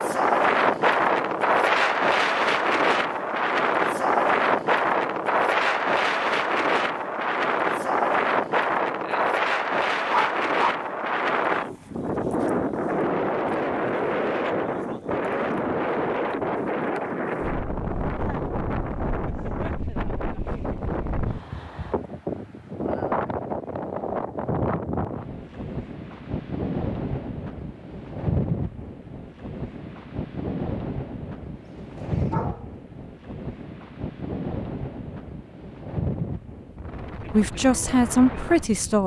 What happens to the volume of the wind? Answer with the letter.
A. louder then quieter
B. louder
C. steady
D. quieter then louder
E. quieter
E.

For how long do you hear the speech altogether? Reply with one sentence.
The speech can be heard for 2 seconds in total.